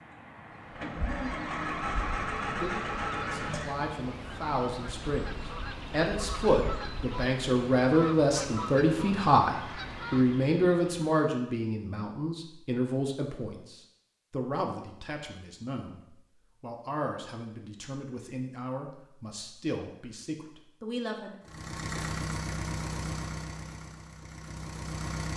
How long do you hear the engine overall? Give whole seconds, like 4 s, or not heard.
8 s.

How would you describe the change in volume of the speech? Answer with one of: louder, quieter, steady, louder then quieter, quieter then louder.
louder then quieter.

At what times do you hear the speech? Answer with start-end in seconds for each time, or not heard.
2.5-21.4.